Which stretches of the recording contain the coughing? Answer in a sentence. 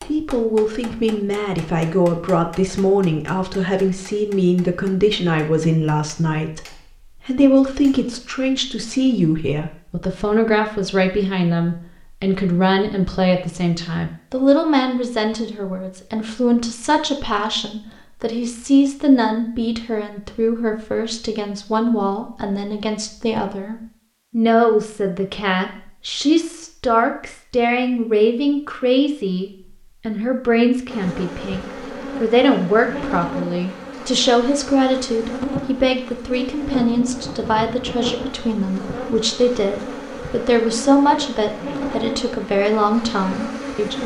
The coughing can't be heard in this clip.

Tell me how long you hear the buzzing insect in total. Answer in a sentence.
The buzzing insect can be heard for 13 seconds in total.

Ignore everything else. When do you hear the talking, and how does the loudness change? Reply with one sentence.
The talking can be heard from 0.1 to 44.0 s, at a steady volume.